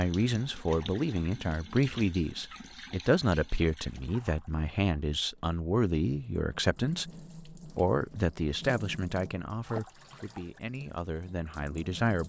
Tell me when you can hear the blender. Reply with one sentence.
The blender can't be heard in this clip.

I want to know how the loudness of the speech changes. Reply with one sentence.
The volume of the speech goes down.